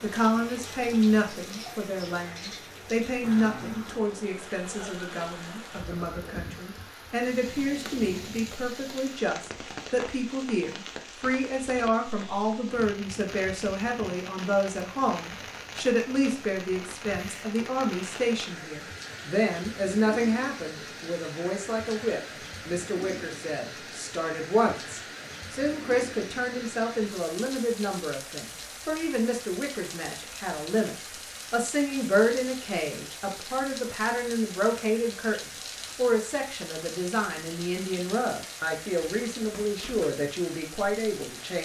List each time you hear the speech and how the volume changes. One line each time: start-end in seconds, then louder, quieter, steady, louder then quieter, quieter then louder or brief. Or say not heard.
0.0-41.6 steady.